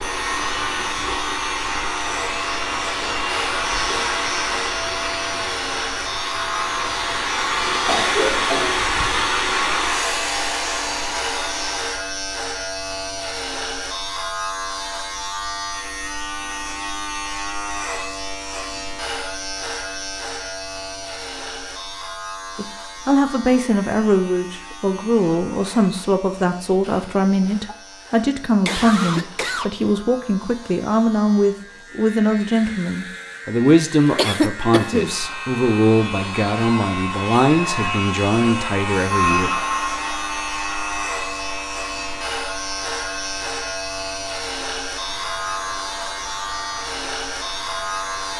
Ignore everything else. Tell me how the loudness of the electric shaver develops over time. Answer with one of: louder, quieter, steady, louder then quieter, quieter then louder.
quieter then louder.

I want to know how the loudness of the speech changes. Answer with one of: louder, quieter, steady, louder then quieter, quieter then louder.
steady.